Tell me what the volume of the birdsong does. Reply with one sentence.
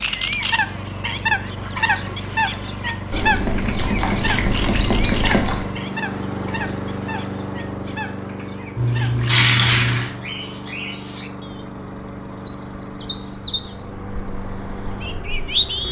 The loudness of the birdsong goes down, then up.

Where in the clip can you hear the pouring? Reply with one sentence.
You can hear the pouring from 3.1 to 5.7 s and from 8.8 to 10.1 s.